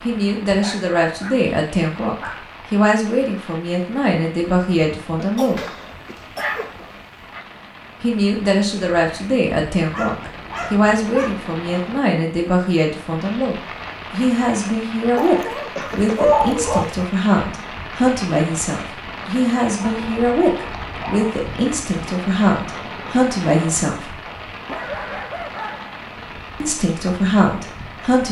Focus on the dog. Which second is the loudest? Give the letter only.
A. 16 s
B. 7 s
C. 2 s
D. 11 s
A.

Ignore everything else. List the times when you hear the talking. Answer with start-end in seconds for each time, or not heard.
0.0-5.6, 8.0-24.2, 26.6-28.2.